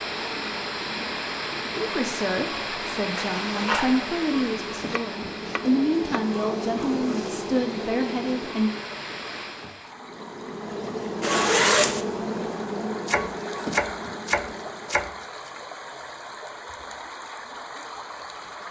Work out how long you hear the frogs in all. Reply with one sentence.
The frogs can't be heard in this clip.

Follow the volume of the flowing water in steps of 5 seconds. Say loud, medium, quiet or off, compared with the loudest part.
loud, medium, medium, medium.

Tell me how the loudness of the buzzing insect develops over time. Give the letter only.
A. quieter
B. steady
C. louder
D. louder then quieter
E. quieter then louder
C.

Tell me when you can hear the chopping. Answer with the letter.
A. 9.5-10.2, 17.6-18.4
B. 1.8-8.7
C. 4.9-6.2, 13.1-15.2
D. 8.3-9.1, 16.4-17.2
C.